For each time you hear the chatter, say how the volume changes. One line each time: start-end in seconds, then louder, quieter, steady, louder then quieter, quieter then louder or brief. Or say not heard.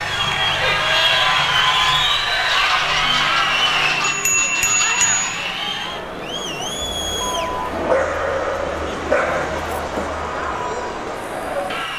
0.0-11.9 quieter.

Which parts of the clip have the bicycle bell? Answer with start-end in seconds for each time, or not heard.
4.0-5.2.